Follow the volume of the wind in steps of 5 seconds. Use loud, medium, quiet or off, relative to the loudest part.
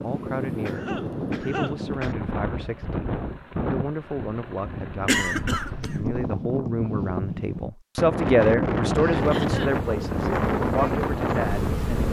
medium, loud, loud.